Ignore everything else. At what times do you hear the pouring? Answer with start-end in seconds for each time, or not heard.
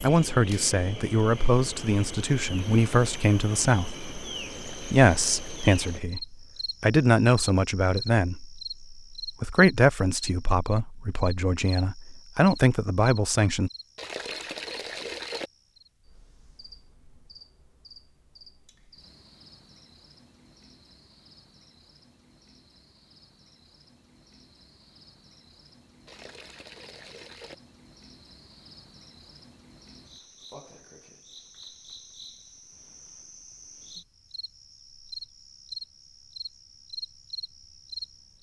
4.5-6.0, 13.9-15.5, 26.1-27.6.